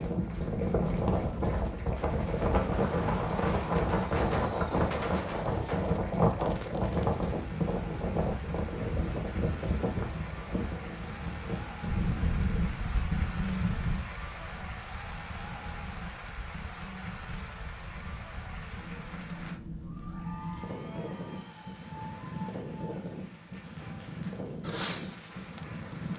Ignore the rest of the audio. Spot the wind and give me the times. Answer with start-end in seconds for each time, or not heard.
0.0-26.1.